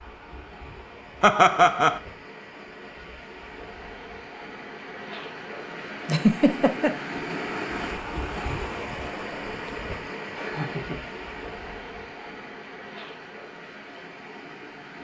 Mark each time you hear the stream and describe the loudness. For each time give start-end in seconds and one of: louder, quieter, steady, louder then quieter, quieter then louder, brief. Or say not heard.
0.0-15.0 louder then quieter.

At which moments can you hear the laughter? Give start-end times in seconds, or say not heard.
1.2-2.0, 6.0-6.9, 10.3-11.0.